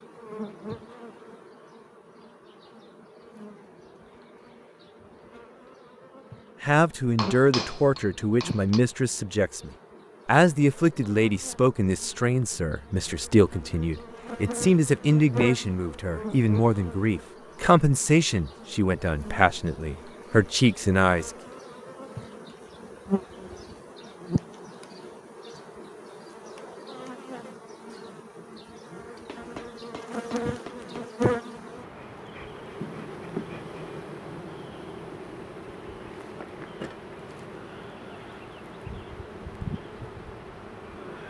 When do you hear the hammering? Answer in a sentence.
You can hear the hammering from 7.2 to 8.8 s and from 29.2 to 31.1 s.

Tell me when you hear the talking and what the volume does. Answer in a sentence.
The talking can be heard from 6.6 to 21.3 s, at a steady volume.